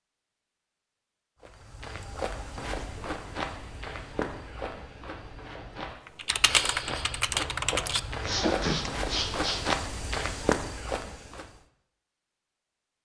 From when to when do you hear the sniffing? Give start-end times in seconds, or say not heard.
8.2-9.6.